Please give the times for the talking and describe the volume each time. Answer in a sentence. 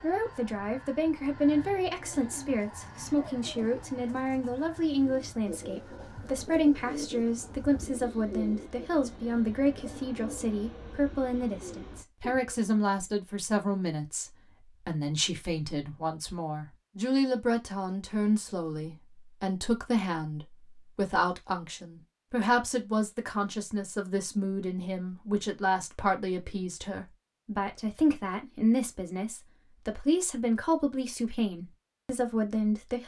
You can hear the talking from 0.0 to 33.0 s, at a steady volume.